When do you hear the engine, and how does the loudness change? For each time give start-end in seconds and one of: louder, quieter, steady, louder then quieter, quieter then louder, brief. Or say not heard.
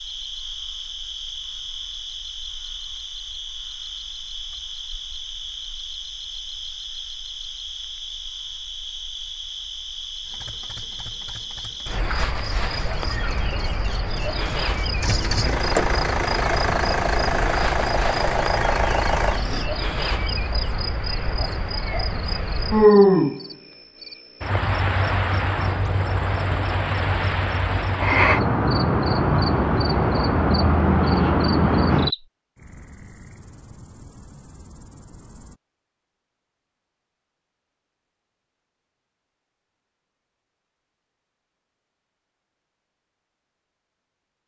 10.2-19.7 louder.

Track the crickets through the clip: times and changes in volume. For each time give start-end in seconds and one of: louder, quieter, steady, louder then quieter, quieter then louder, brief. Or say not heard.
0.0-35.5 louder.